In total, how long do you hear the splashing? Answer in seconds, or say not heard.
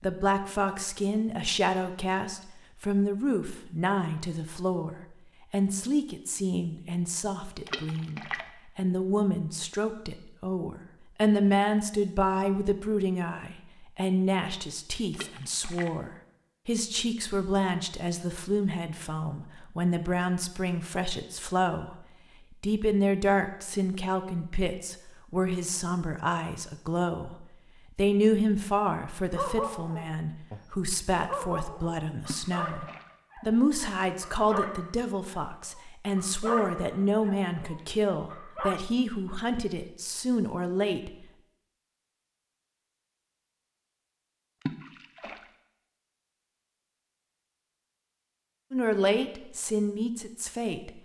3 s.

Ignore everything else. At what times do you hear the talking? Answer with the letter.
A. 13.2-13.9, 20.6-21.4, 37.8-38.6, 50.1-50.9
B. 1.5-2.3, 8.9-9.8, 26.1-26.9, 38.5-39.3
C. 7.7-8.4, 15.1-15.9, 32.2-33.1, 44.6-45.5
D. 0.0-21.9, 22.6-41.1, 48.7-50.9
D.